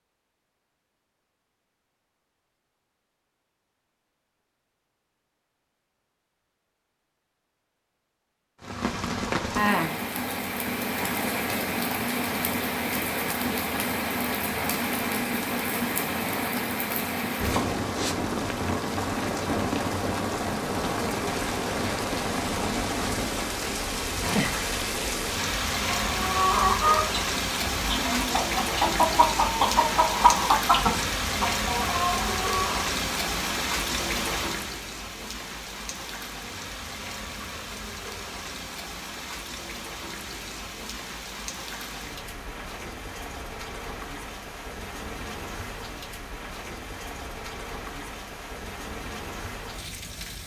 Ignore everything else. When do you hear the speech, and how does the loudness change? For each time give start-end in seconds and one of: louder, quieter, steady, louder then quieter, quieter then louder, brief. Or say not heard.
not heard.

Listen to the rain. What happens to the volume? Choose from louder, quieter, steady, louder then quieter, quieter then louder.
quieter.